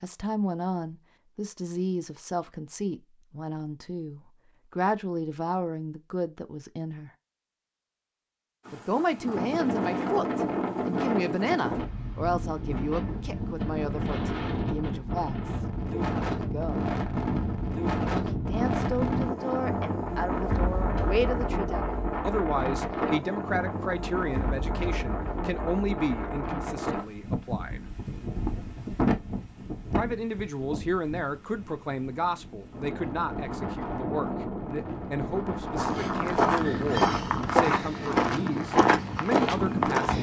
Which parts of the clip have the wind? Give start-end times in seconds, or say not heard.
8.7-40.1.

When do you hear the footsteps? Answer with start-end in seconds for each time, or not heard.
35.8-40.1.